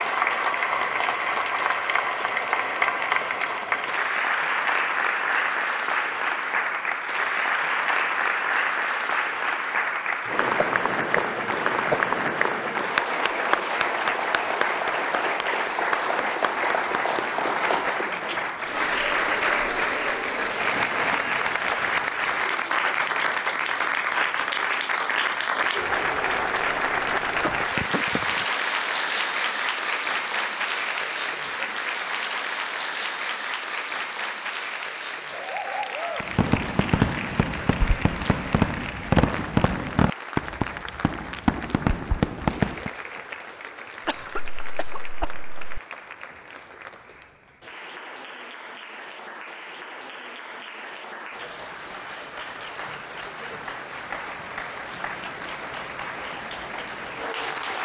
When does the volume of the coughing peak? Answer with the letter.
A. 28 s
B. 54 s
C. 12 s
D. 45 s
C.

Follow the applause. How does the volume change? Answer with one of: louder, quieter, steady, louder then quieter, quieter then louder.
quieter.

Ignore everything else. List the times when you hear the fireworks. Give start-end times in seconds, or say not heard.
36.2-42.9.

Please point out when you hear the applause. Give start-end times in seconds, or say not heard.
0.0-57.8.